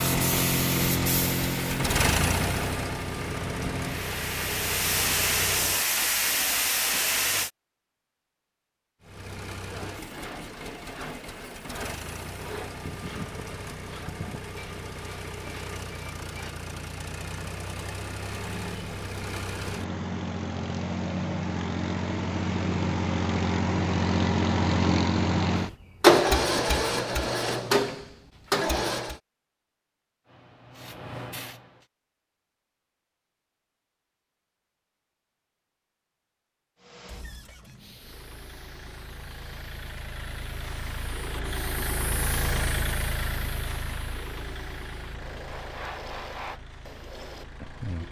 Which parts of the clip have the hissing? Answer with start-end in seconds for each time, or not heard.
0.0-7.5, 30.2-31.9, 37.8-48.0.